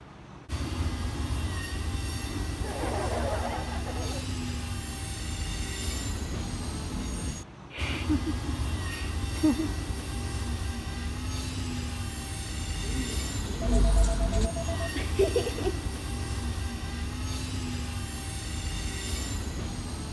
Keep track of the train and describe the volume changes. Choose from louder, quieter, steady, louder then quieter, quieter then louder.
steady.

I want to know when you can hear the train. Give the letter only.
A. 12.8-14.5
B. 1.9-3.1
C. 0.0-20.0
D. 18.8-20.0
C.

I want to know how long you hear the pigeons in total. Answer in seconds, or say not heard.
2 s.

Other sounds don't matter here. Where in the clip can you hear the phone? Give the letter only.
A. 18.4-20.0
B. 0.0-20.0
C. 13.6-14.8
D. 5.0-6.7
C.